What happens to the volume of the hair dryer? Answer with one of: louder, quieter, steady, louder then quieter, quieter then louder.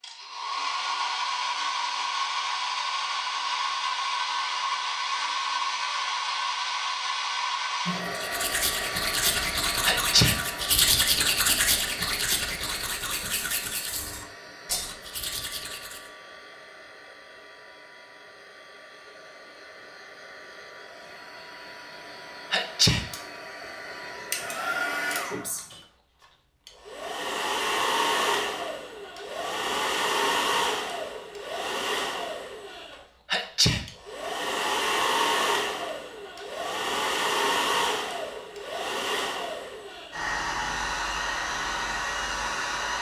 quieter then louder.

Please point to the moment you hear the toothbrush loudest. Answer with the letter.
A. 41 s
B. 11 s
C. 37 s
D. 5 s
B.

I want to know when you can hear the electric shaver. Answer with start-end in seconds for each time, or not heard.
not heard.